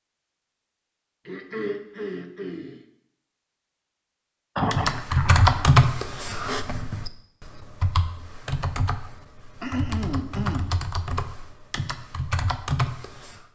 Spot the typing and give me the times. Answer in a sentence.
The typing can be heard from 4.7 to 13.4 s.